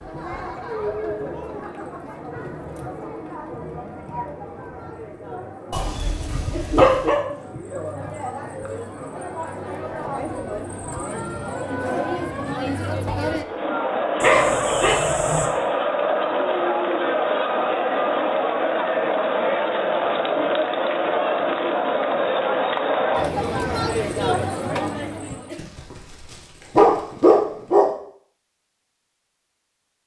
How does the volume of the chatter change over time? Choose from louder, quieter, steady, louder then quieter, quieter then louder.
louder.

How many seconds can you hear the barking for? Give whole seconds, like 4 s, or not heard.
5 s.